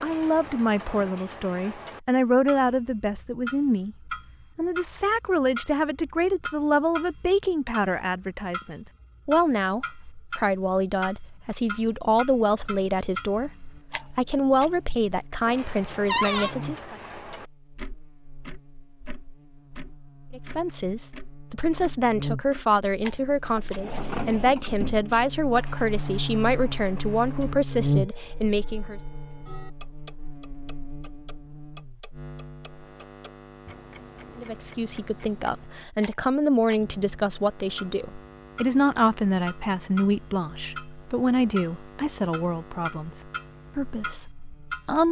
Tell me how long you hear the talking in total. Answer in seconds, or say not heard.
36 s.